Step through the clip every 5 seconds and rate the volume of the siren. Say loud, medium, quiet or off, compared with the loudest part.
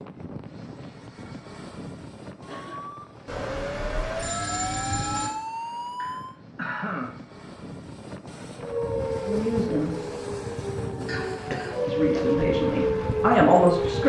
medium, loud, loud.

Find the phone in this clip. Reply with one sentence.
The phone can be heard from 3.2 to 5.3 s.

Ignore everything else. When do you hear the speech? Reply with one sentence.
The speech can be heard from 9.2 to 9.9 s and from 11.8 to 14.0 s.